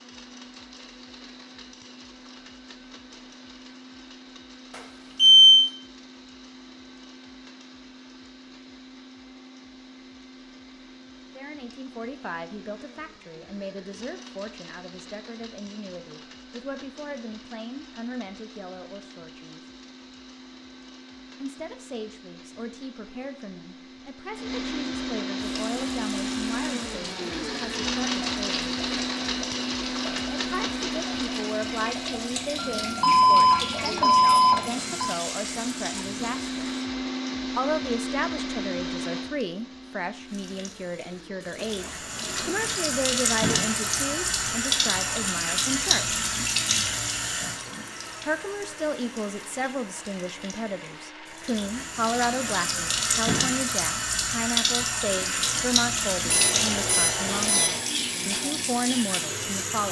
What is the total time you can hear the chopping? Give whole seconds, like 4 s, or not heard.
not heard.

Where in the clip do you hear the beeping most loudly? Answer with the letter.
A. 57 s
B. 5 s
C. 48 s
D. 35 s
B.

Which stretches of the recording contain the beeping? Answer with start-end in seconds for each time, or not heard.
4.8-5.7, 32.5-35.1, 56.2-57.8.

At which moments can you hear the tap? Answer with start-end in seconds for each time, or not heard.
25.6-36.9, 40.3-59.8.